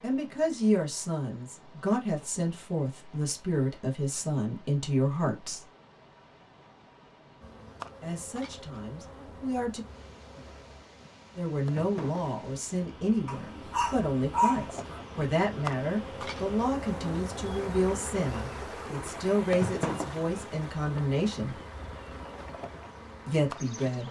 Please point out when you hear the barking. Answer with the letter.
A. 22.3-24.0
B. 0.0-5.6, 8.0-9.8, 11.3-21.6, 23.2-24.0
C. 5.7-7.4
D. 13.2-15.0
D.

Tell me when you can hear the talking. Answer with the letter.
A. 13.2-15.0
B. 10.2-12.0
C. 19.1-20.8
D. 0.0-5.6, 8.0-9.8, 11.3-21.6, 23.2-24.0
D.